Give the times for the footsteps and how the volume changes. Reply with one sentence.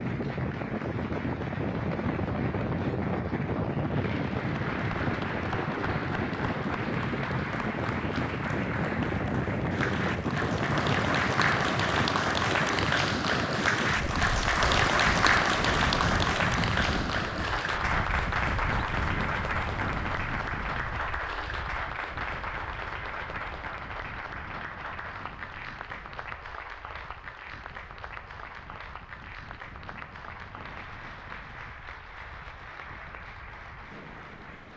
You can't hear the footsteps here.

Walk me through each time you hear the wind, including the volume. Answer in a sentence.
The wind can be heard from 0.0 to 34.7 s, getting quieter.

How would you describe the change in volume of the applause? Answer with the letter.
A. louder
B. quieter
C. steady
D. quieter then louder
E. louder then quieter
E.